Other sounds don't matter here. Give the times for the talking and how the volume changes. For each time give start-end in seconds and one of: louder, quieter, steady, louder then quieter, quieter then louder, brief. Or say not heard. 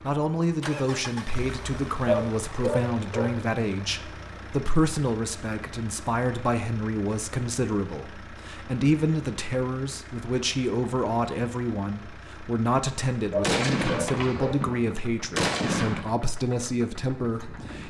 0.0-17.8 steady.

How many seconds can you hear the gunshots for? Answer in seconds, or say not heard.
3 s.